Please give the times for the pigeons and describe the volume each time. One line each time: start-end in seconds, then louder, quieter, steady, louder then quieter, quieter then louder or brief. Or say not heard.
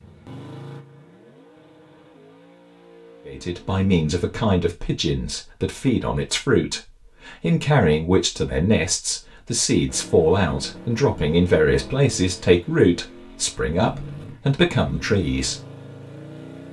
not heard.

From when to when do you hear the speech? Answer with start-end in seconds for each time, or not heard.
3.2-15.6.